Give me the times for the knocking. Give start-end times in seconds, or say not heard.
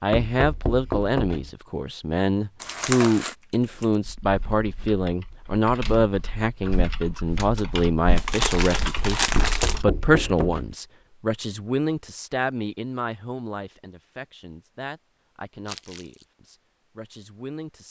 0.1-1.5, 9.3-10.8.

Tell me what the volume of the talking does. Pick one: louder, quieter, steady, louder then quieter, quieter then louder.
quieter.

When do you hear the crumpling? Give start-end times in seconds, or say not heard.
2.6-3.4, 8.2-9.8, 15.7-16.2.